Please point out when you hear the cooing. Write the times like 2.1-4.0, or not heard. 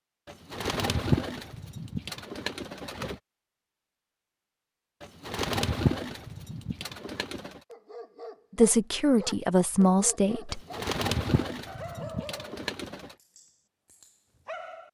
0.2-3.2, 5.0-7.6, 10.5-13.2.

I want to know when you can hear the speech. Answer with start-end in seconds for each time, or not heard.
8.6-10.6.